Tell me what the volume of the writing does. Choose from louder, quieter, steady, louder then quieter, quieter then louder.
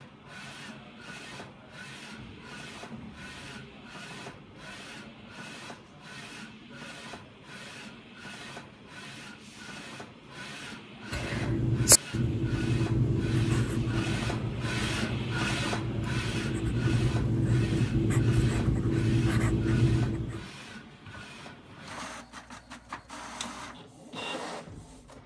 quieter then louder.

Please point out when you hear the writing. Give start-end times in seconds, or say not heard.
11.1-20.5.